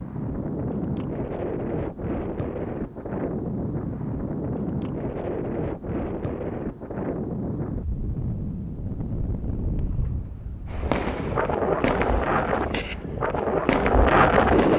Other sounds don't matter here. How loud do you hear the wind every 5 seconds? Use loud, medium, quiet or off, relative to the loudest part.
medium, medium, loud.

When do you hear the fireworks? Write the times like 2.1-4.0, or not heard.
10.7-14.7.